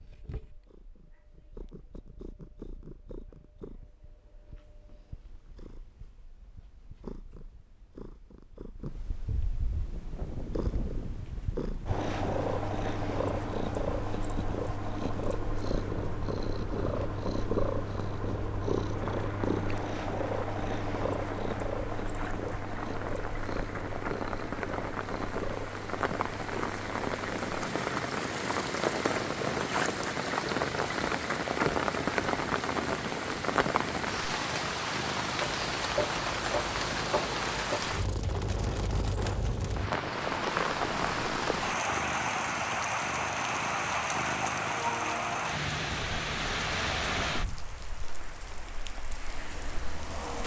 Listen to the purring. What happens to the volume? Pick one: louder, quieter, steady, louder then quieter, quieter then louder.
louder then quieter.